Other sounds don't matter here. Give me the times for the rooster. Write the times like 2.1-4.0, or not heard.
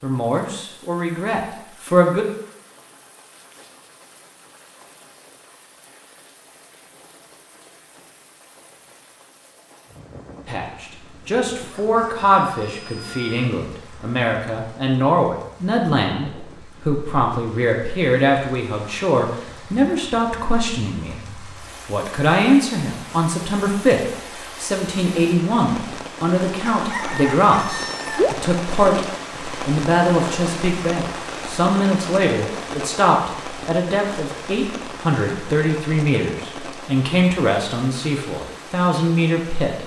11.6-13.6, 26.7-28.4.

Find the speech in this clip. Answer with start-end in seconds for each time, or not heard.
0.0-2.2, 10.4-39.8.